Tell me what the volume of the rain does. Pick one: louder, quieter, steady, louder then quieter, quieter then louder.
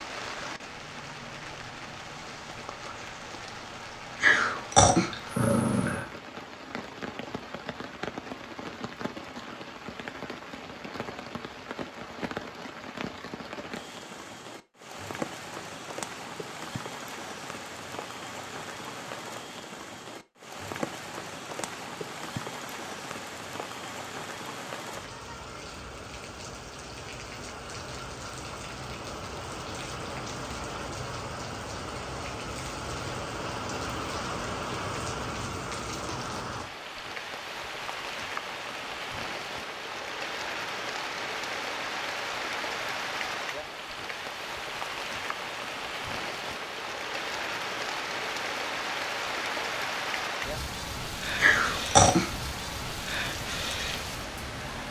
louder.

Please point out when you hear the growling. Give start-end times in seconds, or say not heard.
4.2-6.0, 51.4-52.3.